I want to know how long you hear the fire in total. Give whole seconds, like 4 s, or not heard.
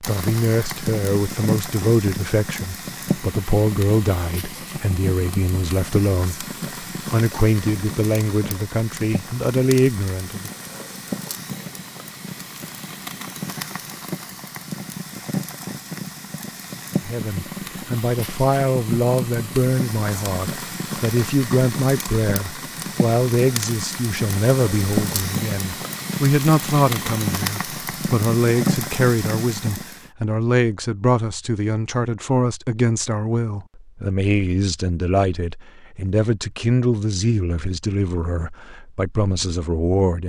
30 s.